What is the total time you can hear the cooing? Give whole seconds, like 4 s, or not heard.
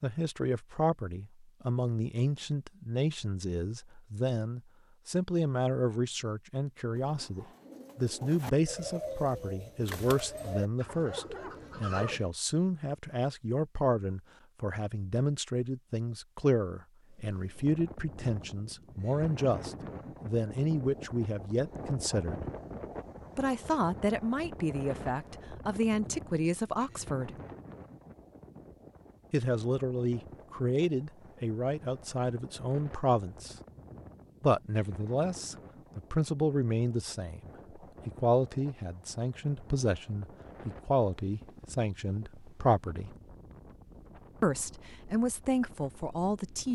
5 s.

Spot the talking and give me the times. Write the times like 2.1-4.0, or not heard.
0.0-22.4, 23.4-27.3, 29.3-33.5, 34.4-43.1, 44.4-46.7.